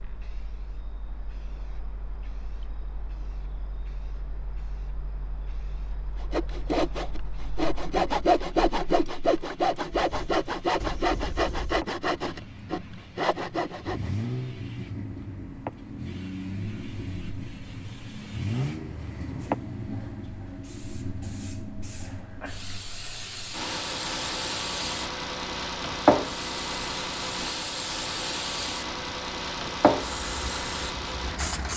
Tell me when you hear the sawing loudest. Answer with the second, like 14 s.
8 s.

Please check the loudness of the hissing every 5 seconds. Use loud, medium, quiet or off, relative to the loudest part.
quiet, quiet, quiet, medium, medium, loud, medium.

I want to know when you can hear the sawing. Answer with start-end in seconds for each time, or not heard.
6.2-14.1.